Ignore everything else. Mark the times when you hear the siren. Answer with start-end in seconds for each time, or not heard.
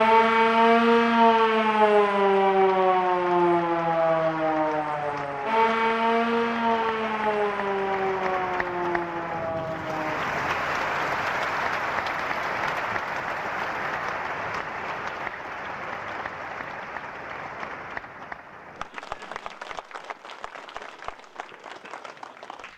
0.0-10.2.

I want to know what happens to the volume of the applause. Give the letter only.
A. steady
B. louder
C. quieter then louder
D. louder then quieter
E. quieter
D.